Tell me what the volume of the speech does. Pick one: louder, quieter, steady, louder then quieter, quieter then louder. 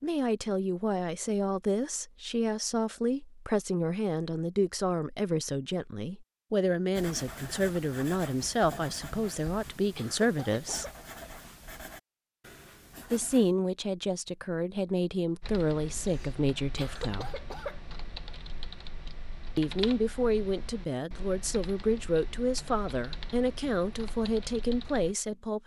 steady.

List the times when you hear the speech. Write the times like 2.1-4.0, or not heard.
0.0-10.8, 13.1-17.4, 19.6-25.6.